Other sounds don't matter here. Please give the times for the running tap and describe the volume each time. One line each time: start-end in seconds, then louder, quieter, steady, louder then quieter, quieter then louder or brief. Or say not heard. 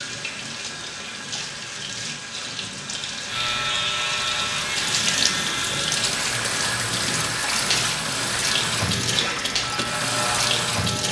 0.0-11.0 louder.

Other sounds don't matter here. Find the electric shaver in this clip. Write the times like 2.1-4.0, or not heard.
3.2-11.0.